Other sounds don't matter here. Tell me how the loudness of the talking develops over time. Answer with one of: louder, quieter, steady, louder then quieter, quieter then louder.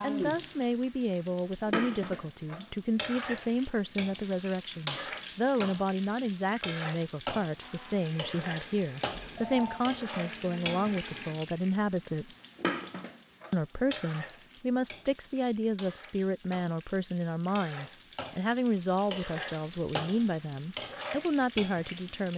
steady.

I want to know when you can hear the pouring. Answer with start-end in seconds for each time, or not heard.
not heard.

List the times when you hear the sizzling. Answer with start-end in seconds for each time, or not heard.
0.0-22.3.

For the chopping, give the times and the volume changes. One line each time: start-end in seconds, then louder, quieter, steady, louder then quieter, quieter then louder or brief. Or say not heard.
not heard.